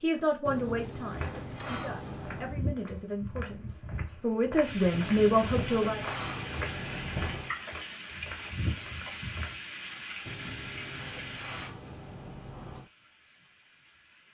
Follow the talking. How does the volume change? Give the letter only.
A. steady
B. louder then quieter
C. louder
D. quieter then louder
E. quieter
D.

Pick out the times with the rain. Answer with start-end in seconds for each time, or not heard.
4.6-14.3.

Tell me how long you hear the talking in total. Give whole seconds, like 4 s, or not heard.
6 s.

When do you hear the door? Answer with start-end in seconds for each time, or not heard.
0.5-2.6, 4.9-7.5, 10.2-12.9.